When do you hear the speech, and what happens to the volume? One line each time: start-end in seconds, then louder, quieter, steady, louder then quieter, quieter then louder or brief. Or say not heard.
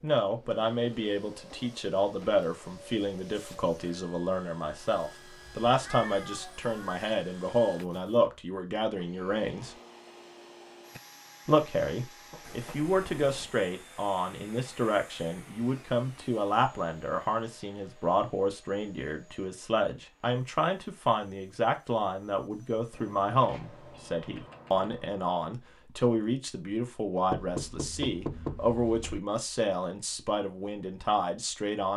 0.0-9.8 steady
11.4-31.9 steady.